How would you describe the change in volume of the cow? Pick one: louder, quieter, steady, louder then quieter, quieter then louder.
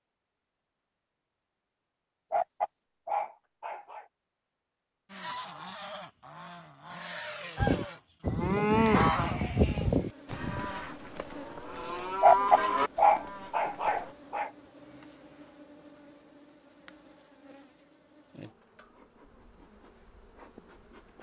quieter then louder.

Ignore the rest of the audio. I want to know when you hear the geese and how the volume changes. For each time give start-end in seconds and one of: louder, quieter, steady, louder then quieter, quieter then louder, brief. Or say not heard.
5.1-10.9 louder then quieter.